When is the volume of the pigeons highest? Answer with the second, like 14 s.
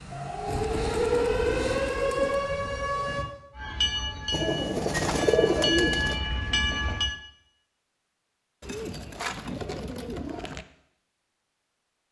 5 s.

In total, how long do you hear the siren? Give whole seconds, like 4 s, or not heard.
3 s.